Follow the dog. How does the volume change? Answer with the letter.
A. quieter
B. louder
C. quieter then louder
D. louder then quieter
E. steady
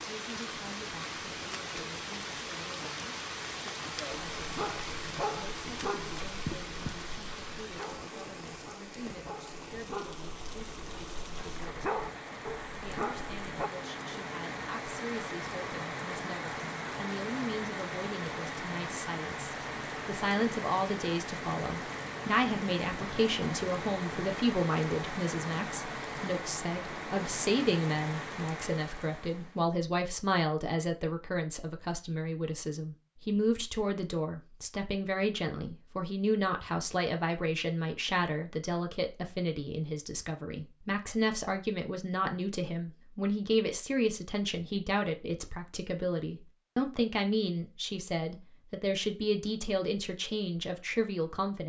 C.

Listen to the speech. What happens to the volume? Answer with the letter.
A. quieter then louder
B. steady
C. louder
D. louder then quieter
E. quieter
C.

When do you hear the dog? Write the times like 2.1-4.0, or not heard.
4.1-13.7.